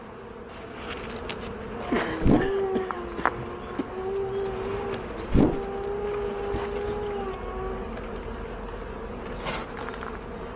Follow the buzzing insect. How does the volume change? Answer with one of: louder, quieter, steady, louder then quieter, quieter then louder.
steady.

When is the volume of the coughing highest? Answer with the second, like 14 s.
2 s.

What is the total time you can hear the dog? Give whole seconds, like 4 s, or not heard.
6 s.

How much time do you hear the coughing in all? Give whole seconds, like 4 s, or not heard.
2 s.